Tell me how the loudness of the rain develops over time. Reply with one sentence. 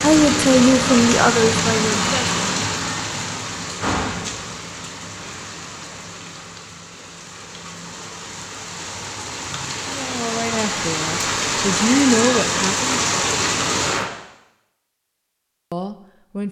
The volume of the rain goes down, then up.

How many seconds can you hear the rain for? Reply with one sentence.
You can hear the rain for 14 seconds altogether.